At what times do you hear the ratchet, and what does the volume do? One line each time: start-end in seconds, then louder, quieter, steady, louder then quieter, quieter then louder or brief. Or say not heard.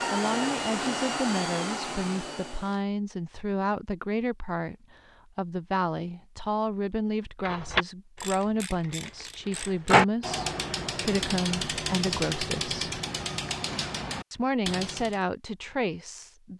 7.5-15.2 louder then quieter.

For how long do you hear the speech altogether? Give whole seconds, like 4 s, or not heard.
15 s.